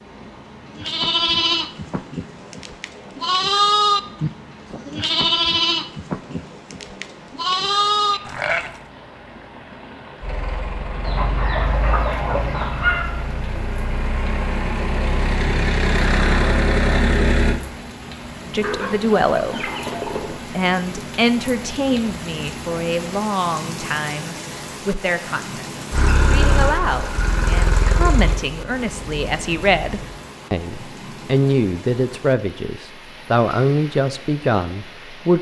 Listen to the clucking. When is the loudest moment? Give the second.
13 s.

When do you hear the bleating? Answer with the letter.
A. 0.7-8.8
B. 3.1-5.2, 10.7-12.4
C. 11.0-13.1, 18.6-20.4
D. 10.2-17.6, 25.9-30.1
A.